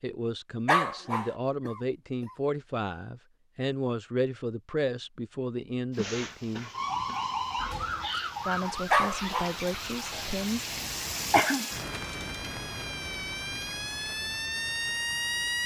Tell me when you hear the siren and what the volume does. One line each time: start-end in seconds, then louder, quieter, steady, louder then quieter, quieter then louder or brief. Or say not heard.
6.7-15.6 quieter then louder.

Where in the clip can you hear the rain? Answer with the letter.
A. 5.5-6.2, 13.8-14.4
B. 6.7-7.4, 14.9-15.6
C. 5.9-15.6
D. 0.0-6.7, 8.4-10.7
C.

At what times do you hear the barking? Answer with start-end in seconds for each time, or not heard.
0.7-1.4, 8.9-9.6.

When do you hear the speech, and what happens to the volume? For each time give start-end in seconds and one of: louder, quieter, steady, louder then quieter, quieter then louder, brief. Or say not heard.
0.0-6.7 steady
8.4-10.7 brief.